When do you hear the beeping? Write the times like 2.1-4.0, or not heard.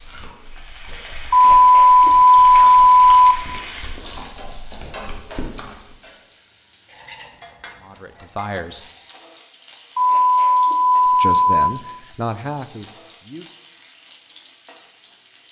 1.3-3.4, 9.9-11.7.